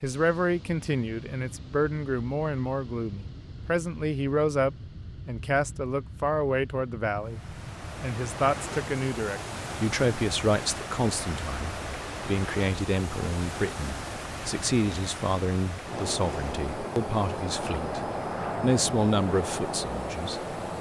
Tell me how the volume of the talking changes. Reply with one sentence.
The loudness of the talking stays about the same.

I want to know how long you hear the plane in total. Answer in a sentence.
The plane can be heard for 21 seconds in total.